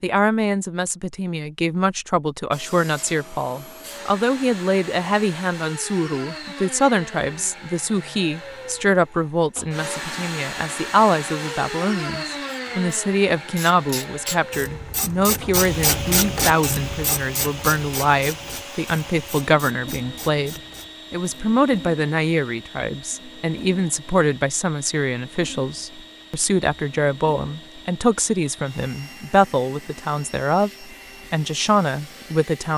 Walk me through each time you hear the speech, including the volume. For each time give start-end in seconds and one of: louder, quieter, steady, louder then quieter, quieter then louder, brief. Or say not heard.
0.0-32.7 steady.